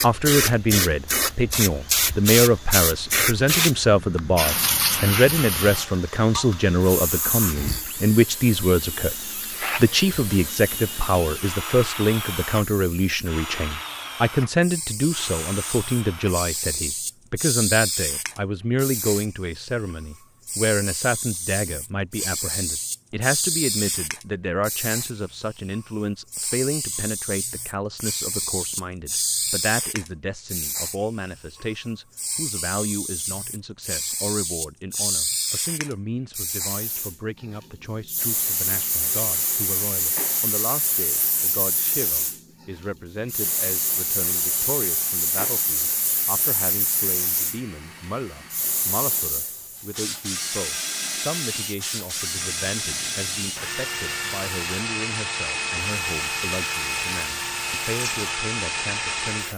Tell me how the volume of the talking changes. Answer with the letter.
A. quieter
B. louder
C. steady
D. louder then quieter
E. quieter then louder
A.